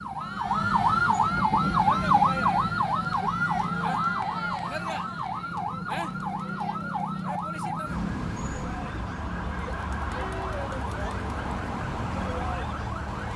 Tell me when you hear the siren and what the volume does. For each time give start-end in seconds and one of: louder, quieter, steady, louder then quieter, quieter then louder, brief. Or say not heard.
0.0-13.3 quieter.